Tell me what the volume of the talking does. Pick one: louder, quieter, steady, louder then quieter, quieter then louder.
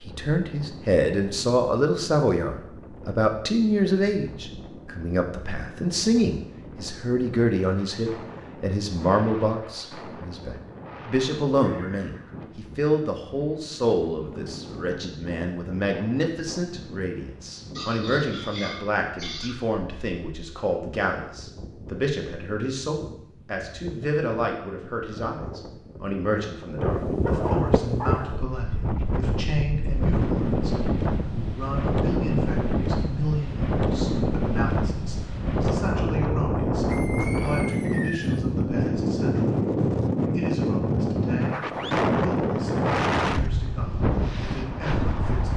quieter.